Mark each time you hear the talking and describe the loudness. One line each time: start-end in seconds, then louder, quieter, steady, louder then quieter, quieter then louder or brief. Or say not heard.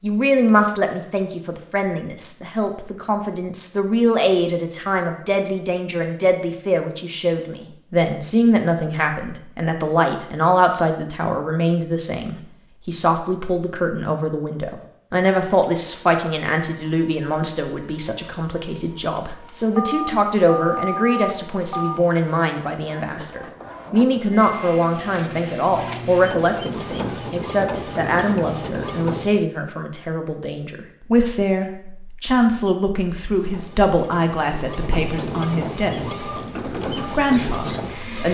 0.0-36.3 steady
37.0-38.2 brief.